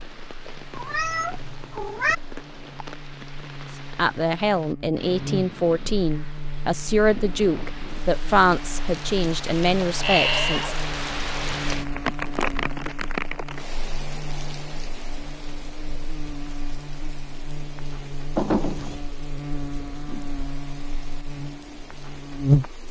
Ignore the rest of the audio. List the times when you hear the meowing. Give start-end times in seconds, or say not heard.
0.7-2.1, 9.8-10.8, 18.4-19.0.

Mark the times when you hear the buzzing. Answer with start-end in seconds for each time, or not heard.
0.0-22.8.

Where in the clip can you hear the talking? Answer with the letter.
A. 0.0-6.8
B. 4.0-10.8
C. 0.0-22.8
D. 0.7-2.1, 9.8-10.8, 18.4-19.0
B.